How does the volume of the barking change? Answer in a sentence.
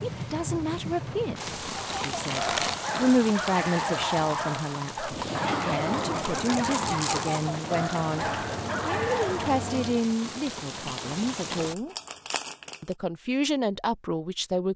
The volume of the barking stays about the same.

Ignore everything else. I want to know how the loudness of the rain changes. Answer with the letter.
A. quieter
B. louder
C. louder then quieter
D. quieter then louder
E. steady
E.